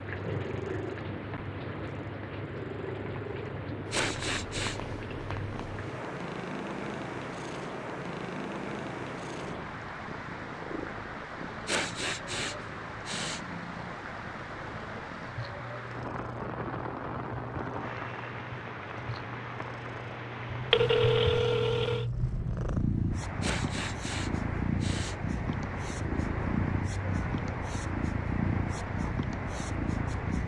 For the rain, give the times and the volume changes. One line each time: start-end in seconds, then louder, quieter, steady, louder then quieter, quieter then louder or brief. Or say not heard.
0.0-30.4 steady.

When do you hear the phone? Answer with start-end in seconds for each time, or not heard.
20.7-22.1.